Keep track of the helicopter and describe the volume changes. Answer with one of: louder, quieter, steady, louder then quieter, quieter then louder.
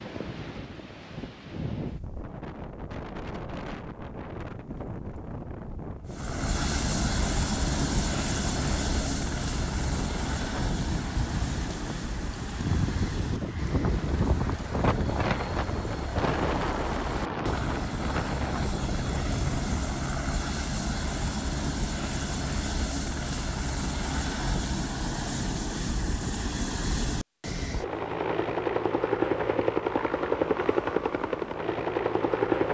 quieter then louder.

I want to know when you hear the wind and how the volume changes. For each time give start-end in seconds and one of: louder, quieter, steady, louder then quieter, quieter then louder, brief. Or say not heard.
0.0-19.7 louder.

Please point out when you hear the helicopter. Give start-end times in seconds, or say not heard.
6.1-32.6.